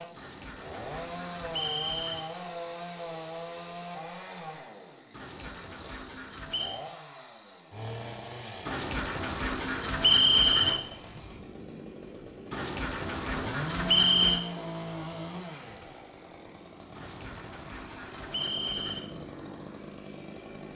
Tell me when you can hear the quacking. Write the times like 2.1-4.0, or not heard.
0.1-2.3, 5.1-6.8, 8.7-10.8, 12.5-14.4, 16.9-19.1.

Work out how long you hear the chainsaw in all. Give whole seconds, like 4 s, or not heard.
21 s.